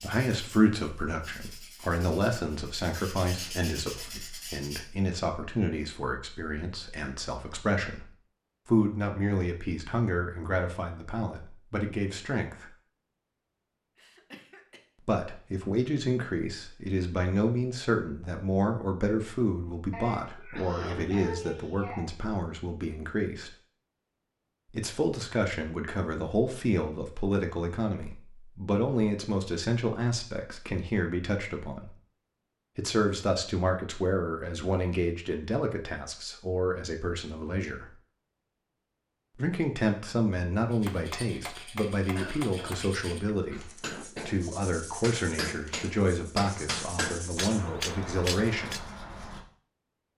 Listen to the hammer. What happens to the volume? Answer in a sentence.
The loudness of the hammer goes up.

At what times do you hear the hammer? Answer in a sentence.
You can hear the hammer from 40.9 to 48.9 s.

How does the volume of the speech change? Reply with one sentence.
The volume of the speech stays about the same.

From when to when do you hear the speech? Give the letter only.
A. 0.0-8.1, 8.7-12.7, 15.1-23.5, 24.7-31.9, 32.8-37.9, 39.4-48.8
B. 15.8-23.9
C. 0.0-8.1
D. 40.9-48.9
A.